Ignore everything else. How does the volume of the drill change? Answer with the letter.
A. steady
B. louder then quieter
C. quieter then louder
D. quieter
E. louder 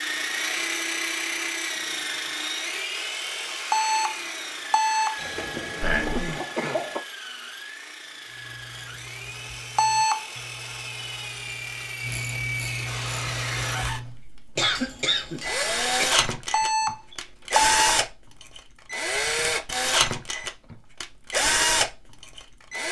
C.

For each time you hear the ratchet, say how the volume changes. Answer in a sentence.
The ratchet can be heard from 8.2 to 14.2 s, getting louder.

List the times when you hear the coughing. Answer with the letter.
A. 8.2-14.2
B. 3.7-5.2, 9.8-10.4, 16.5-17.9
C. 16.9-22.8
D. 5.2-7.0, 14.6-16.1
D.